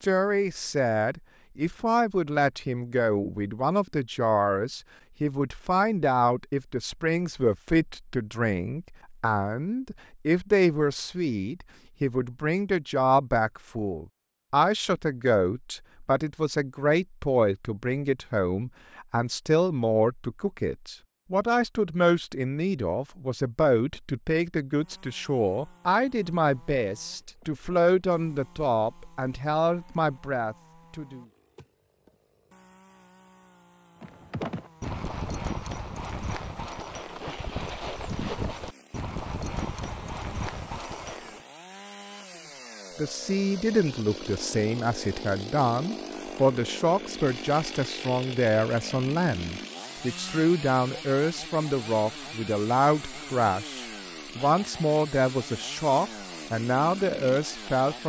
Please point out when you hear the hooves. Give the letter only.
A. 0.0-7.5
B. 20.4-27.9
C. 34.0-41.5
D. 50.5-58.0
C.